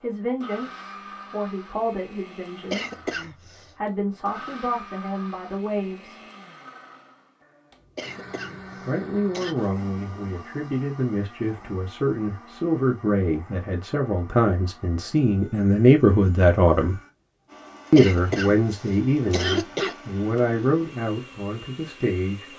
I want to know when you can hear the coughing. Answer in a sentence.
The coughing can be heard from 2.7 to 3.8 s, from 8.0 to 9.6 s and from 17.9 to 19.9 s.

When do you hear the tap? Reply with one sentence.
The tap can't be heard in this clip.